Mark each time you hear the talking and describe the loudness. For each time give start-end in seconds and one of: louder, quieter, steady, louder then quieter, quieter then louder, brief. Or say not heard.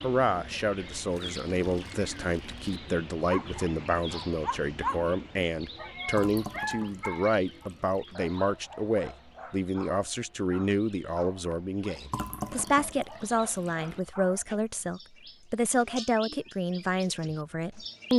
0.0-18.1 steady.